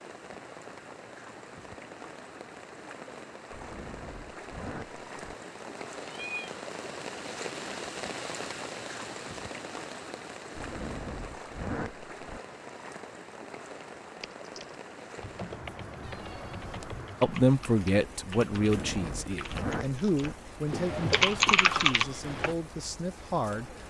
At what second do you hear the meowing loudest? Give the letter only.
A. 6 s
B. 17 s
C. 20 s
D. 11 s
A.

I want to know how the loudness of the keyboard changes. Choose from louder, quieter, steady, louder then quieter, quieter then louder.
louder.